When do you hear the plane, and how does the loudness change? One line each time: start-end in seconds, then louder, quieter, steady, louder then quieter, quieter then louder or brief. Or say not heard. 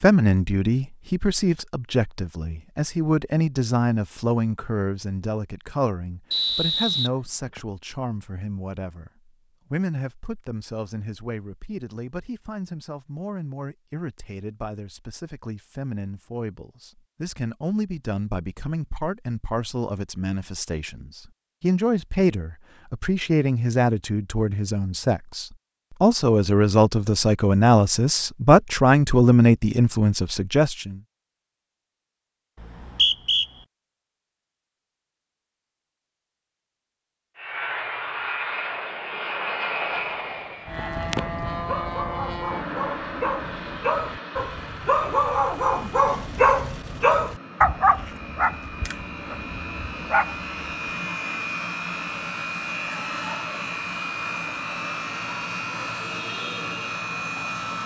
37.4-57.8 quieter then louder.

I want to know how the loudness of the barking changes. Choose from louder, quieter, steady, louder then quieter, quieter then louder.
louder then quieter.